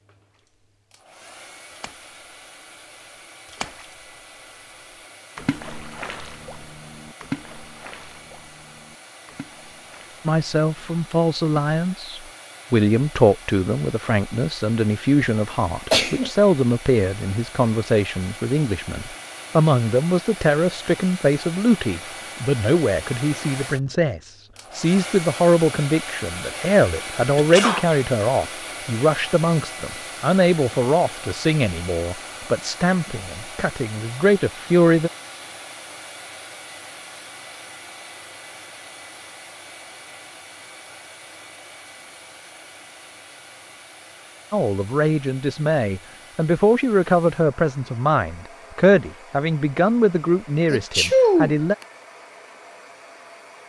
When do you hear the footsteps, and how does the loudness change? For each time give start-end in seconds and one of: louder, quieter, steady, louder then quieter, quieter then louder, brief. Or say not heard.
not heard.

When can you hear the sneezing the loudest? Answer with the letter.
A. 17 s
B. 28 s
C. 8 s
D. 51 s
D.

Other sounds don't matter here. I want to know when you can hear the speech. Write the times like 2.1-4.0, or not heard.
10.2-35.1, 44.5-51.8.